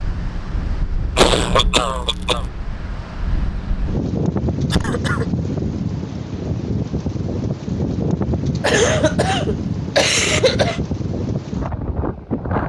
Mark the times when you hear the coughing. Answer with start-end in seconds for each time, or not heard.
1.1-2.5, 4.7-5.2, 8.6-10.8.